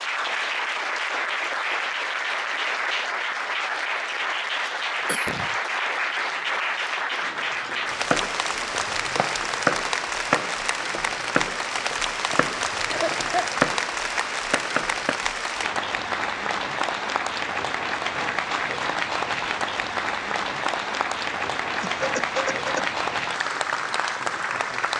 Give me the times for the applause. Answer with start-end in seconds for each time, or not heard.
0.0-24.9.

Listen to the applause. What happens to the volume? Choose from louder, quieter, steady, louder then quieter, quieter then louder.
steady.